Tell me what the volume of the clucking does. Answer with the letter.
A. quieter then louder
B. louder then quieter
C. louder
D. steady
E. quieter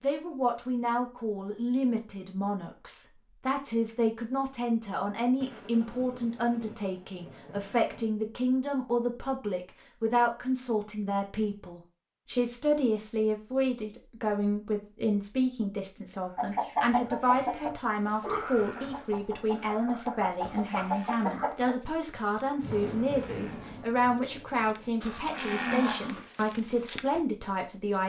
A.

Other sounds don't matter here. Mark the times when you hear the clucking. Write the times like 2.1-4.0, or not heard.
16.4-21.8.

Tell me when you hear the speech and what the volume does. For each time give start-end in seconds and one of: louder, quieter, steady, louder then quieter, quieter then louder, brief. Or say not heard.
0.0-28.0 steady.